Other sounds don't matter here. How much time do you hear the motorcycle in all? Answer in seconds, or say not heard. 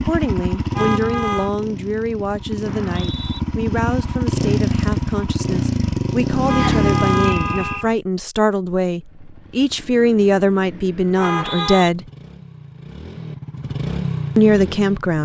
14 s.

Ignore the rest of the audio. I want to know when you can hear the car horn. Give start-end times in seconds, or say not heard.
0.7-1.5, 6.5-7.9, 11.2-11.9.